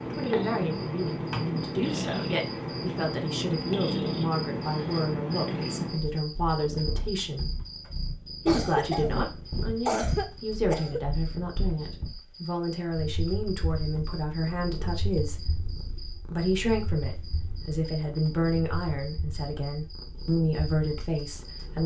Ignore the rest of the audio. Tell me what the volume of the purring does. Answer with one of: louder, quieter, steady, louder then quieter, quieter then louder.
quieter.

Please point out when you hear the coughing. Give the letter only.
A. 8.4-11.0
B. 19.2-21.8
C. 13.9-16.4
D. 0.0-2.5
A.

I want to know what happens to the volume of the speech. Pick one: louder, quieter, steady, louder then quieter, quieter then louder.
steady.